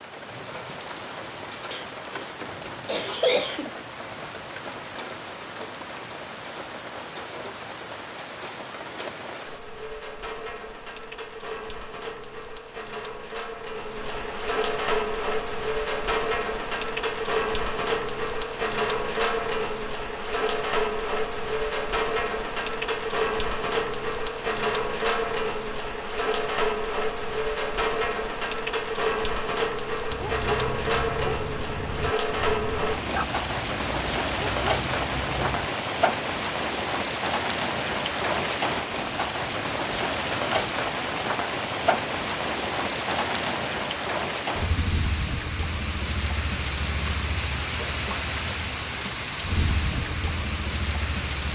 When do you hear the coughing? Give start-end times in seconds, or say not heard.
1.7-3.7.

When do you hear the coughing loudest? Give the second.
3 s.